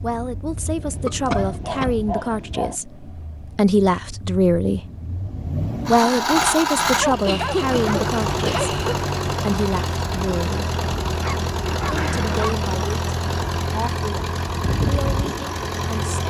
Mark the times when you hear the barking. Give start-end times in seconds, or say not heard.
0.8-2.8, 7.0-8.8, 11.2-12.6.